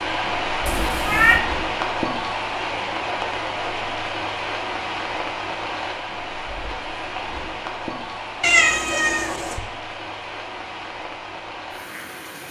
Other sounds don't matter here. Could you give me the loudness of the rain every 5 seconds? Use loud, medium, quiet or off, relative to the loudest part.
loud, medium, medium.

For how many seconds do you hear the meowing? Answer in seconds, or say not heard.
2 s.